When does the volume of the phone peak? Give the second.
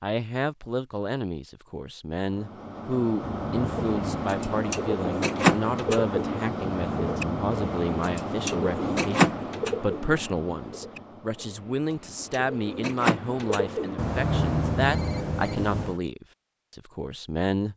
14 s.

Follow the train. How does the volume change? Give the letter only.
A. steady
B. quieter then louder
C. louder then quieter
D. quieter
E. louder
D.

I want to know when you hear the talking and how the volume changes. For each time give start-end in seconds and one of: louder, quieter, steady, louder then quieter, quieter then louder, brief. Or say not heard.
0.0-17.7 steady.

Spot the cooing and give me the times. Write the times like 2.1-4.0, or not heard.
3.8-14.0.